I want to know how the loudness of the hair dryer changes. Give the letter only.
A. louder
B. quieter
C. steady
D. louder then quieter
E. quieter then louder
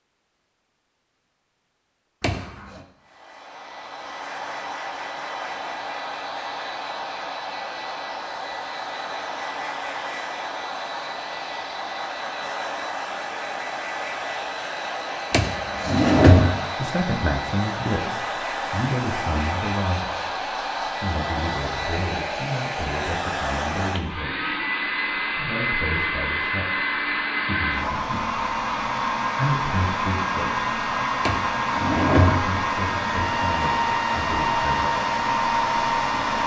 A.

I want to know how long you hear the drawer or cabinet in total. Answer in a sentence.
You can hear the drawer or cabinet for 3 seconds altogether.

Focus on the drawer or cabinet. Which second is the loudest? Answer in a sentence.
The loudest moment of the drawer or cabinet is at 16 seconds.